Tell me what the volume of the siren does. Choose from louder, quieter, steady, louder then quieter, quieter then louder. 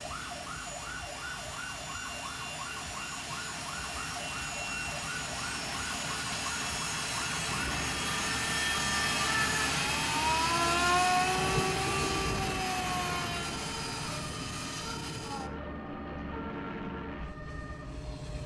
louder then quieter.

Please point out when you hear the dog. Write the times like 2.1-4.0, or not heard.
not heard.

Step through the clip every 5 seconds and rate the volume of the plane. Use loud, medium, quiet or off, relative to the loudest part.
medium, loud, loud, medium.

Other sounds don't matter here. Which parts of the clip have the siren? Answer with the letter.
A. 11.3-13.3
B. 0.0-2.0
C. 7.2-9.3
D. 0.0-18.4
D.